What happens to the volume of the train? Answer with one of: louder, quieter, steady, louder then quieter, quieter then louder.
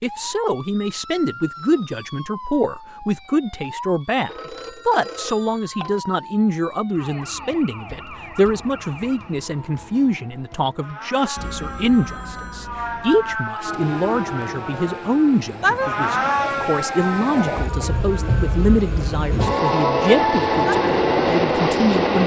louder.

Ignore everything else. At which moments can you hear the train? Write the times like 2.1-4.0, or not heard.
13.6-22.2.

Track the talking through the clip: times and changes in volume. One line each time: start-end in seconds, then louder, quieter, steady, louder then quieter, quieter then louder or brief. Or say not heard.
0.0-22.2 steady.